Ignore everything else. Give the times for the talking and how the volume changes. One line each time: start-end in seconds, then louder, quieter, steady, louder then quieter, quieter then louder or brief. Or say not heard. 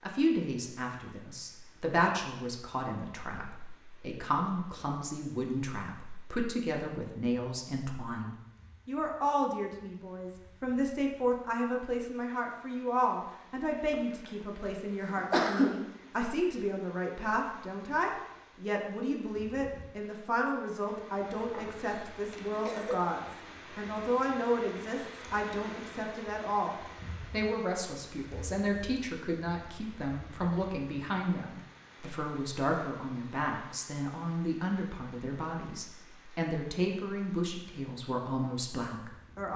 0.0-39.5 steady.